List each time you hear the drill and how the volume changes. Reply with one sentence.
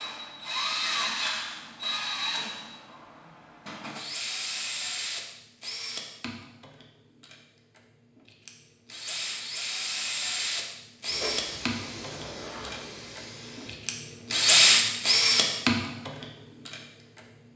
The drill can be heard from 0.0 to 17.2 s, getting louder.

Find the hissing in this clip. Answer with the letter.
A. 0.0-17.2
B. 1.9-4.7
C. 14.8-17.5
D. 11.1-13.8
D.